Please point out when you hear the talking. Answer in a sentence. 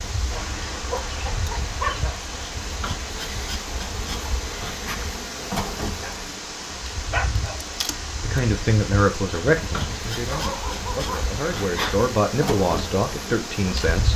The talking can be heard from 8.2 to 14.1 s.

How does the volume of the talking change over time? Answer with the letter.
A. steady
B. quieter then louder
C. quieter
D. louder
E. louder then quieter
B.